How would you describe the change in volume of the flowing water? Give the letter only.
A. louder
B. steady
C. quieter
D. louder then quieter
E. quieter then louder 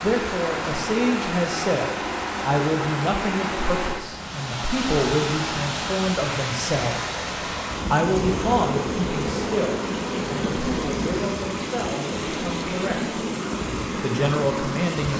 B.